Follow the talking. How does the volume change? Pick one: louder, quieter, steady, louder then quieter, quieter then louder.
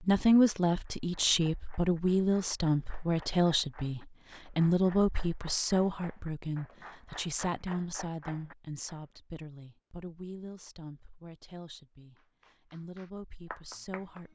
quieter.